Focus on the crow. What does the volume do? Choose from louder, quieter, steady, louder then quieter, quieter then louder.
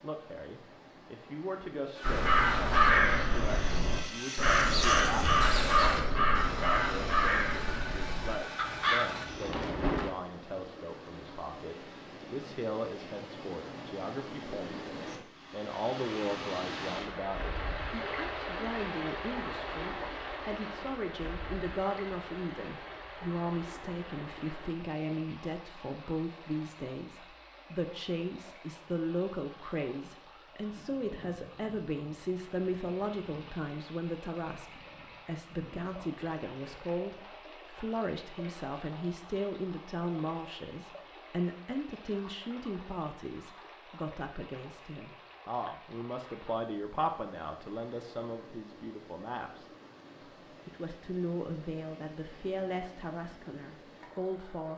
quieter.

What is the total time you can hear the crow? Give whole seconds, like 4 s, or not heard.
8 s.